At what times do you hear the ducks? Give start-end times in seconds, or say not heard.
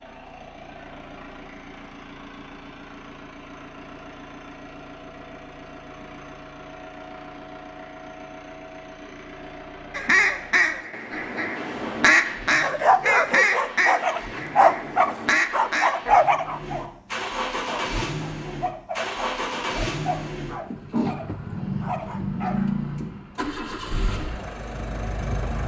9.9-16.1.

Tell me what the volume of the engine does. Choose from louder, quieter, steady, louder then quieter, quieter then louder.
louder.